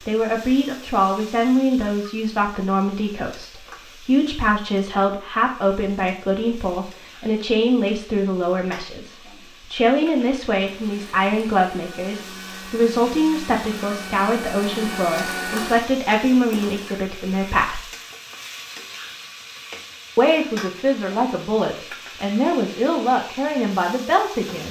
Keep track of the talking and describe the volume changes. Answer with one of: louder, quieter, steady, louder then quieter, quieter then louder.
steady.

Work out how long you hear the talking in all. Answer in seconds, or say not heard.
22 s.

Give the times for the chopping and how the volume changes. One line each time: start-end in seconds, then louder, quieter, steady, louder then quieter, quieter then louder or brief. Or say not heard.
not heard.